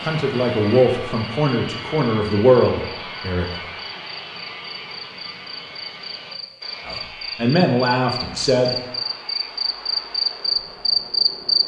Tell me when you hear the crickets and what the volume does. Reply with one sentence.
You can hear the crickets from 0.0 to 11.6 s, getting louder.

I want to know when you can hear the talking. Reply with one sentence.
The talking can be heard from 0.0 to 3.5 s and from 6.8 to 8.8 s.